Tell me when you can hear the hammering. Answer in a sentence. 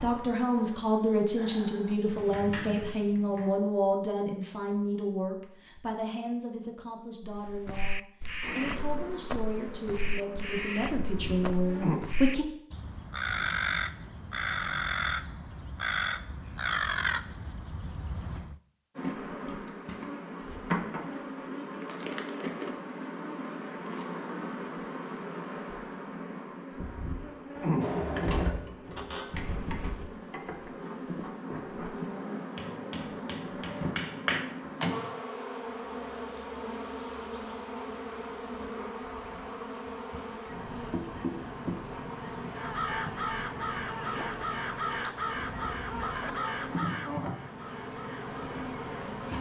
The hammering can be heard from 32.5 to 34.5 s.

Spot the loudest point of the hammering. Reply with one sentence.
The loudest moment of the hammering is at 34 seconds.